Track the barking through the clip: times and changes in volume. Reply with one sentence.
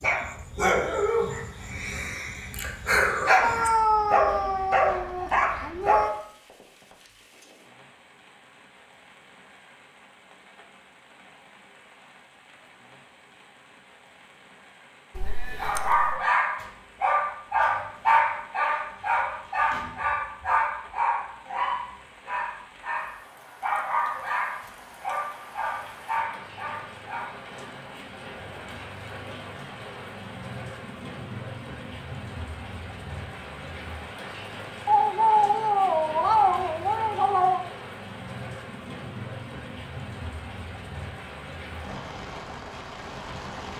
The barking can be heard from 0.0 to 6.1 s, getting quieter then louder; and from 15.6 to 27.8 s, getting quieter.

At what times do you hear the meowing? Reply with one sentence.
The meowing can be heard from 3.4 to 6.1 s, from 15.2 to 16.1 s and from 34.9 to 37.6 s.